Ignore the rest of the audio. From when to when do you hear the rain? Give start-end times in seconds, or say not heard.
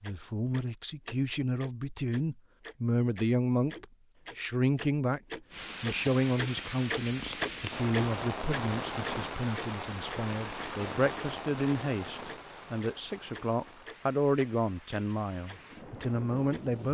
5.5-16.8.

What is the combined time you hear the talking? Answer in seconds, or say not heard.
17 s.